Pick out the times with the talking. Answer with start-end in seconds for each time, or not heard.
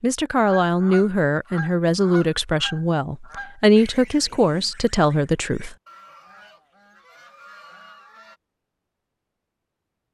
0.0-5.8.